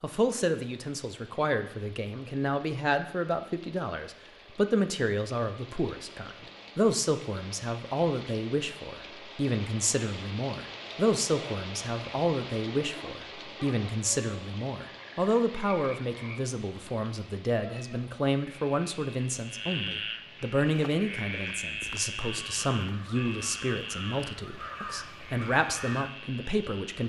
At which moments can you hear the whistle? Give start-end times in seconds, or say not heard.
not heard.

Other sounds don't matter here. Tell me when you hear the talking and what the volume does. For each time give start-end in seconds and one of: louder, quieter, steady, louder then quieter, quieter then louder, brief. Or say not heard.
0.0-27.0 steady.